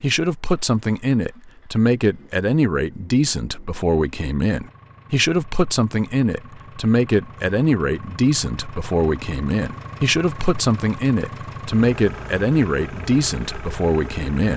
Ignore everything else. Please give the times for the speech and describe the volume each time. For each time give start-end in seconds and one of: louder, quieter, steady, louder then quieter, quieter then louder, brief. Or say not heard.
0.0-14.5 steady.